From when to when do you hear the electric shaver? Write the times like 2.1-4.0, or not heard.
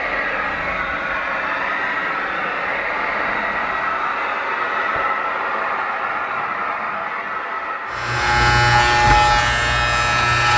7.9-10.5.